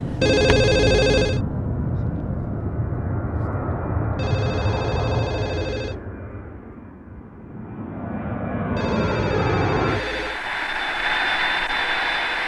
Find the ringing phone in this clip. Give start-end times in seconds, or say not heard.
0.2-1.4, 4.2-6.0, 8.8-10.4.